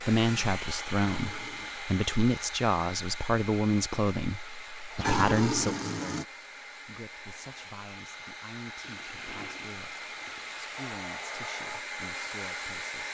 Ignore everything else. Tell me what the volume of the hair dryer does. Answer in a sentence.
The loudness of the hair dryer goes down, then up.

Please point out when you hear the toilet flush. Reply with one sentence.
You can hear the toilet flush from 1.1 to 1.8 s, from 5.0 to 6.2 s and from 8.8 to 10.8 s.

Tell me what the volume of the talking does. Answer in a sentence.
The volume of the talking goes down.